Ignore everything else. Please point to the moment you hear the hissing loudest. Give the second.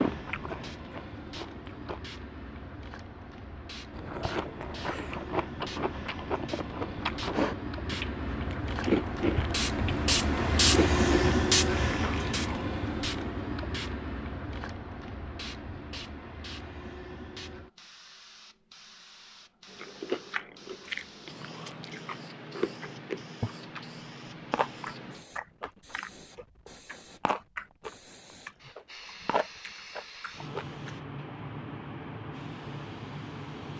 11 s.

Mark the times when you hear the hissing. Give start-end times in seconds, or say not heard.
0.0-33.7.